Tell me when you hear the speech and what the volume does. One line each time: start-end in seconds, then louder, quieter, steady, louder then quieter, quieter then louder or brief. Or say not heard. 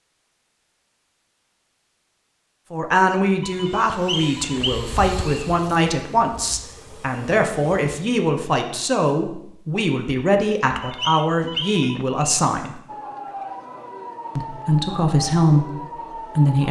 2.7-12.8 steady
14.3-16.6 brief.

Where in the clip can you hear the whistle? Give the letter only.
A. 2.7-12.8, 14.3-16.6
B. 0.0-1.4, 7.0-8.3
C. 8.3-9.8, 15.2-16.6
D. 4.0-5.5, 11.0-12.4
D.